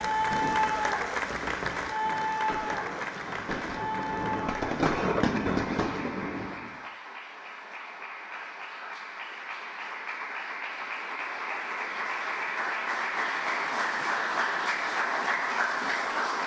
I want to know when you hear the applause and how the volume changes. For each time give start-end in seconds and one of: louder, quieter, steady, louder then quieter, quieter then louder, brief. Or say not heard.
0.0-16.4 quieter then louder.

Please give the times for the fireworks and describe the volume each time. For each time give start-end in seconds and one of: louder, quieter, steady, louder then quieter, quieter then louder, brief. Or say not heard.
0.0-6.8 louder.